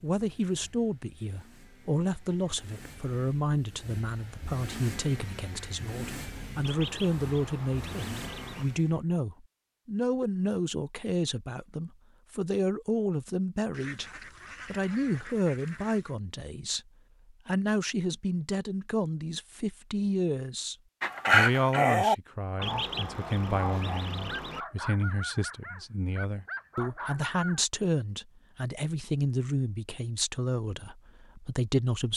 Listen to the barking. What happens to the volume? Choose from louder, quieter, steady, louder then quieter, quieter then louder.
quieter.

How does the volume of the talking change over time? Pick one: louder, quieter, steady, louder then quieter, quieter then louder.
steady.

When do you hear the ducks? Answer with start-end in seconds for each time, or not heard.
6.6-8.7, 13.7-16.1, 22.6-24.6.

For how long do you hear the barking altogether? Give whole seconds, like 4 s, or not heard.
7 s.